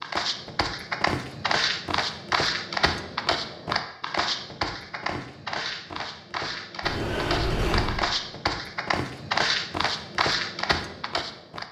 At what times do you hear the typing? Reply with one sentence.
The typing can't be heard in this clip.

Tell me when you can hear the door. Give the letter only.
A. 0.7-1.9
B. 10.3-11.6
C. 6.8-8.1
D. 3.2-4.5
C.